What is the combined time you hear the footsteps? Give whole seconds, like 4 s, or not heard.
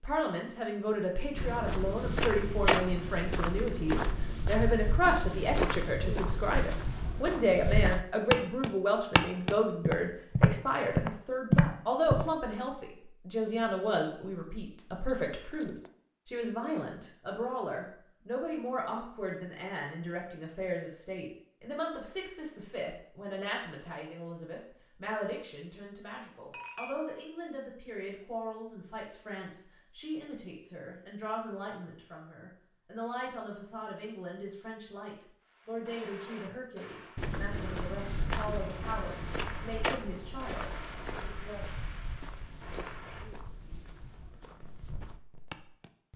20 s.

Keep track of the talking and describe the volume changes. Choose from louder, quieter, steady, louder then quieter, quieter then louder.
quieter.